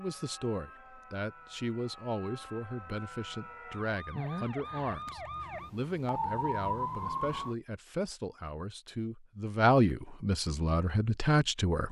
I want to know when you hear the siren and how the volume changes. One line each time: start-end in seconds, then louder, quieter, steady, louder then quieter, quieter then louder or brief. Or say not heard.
0.0-7.5 louder.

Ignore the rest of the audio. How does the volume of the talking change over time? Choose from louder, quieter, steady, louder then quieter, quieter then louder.
louder.